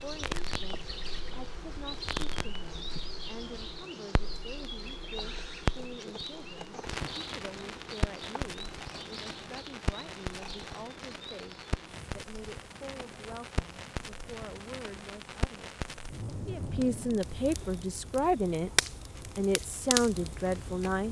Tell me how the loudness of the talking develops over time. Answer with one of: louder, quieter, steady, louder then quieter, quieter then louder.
louder.